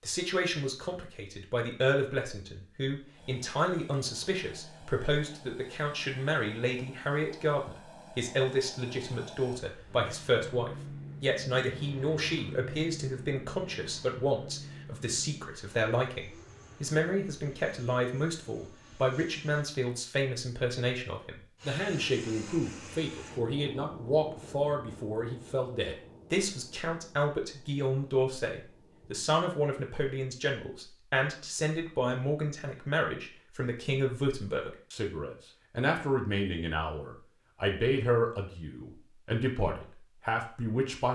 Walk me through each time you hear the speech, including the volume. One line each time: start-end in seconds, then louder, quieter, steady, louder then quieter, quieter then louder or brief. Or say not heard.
0.0-41.1 steady.